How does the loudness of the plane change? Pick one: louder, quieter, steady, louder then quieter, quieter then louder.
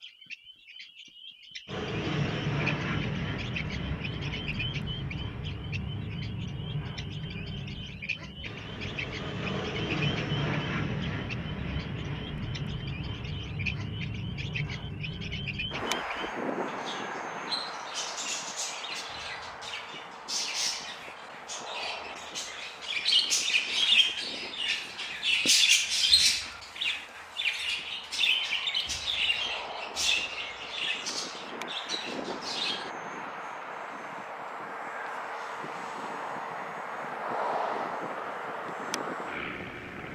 quieter then louder.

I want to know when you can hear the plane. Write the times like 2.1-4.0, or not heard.
1.6-40.1.